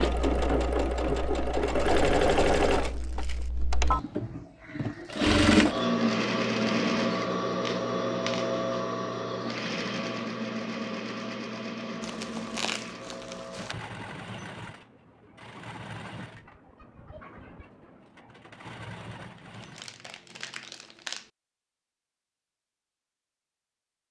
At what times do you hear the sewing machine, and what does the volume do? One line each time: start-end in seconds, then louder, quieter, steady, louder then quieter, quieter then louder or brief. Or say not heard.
0.0-19.9 quieter.